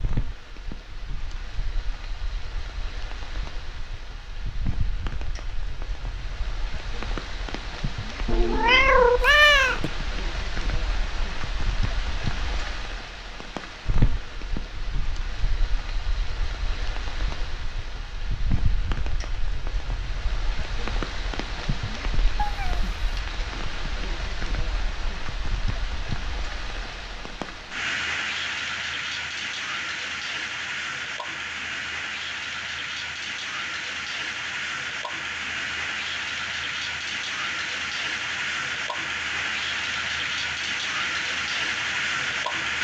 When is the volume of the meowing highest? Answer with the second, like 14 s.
9 s.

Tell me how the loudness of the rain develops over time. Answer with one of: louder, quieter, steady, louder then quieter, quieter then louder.
louder.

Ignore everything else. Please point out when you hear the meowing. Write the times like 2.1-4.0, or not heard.
8.2-9.9, 22.4-23.2.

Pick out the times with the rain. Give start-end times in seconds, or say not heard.
0.0-42.7.